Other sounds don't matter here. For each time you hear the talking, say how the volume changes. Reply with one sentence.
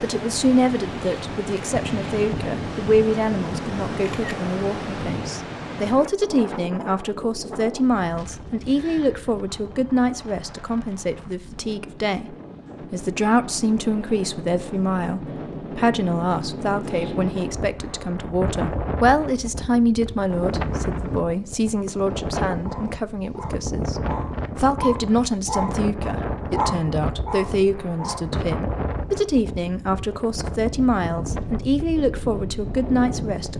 You can hear the talking from 0.0 to 33.5 s, at a steady volume.